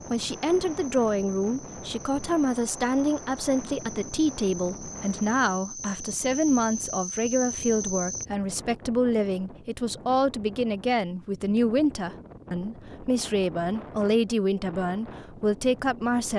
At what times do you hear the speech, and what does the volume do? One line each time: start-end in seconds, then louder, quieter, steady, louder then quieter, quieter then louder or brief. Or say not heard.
0.1-16.3 steady.